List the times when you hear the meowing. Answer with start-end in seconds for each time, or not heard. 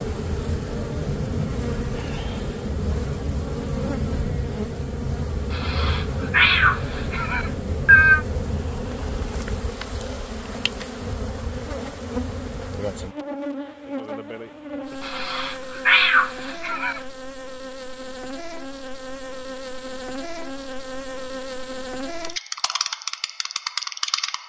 5.5-8.2, 15.0-17.0.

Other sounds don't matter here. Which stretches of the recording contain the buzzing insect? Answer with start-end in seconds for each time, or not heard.
0.0-24.4.